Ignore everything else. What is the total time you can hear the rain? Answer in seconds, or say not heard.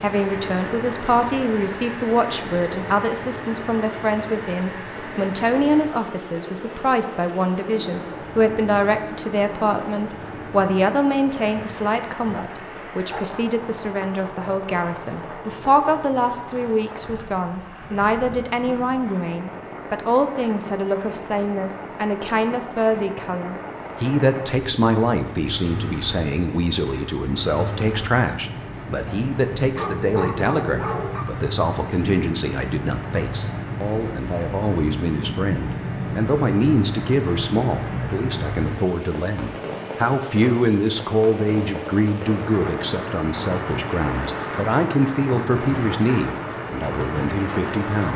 48 s.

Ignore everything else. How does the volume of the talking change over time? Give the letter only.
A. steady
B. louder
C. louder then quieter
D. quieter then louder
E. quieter
A.